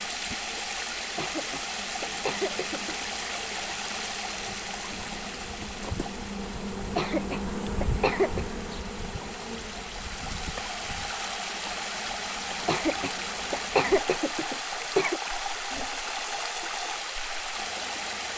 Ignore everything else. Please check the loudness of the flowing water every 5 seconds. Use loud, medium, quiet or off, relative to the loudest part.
loud, medium, loud, loud.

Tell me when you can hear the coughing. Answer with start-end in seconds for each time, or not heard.
1.0-3.0, 6.8-8.4, 12.5-15.2.